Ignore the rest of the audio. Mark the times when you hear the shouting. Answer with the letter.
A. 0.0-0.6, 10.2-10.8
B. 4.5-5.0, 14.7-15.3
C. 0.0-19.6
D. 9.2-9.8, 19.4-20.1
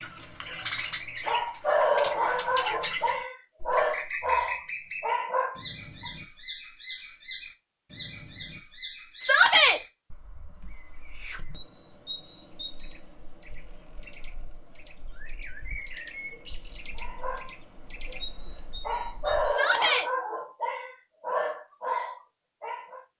D.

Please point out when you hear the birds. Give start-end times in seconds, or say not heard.
0.0-19.6.